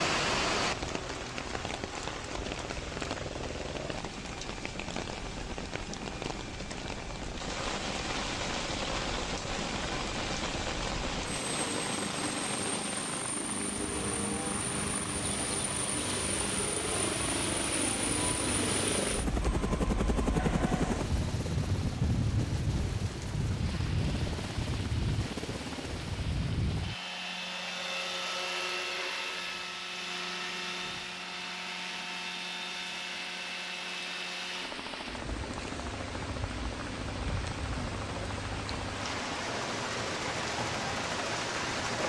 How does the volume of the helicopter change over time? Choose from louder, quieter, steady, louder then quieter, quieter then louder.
louder then quieter.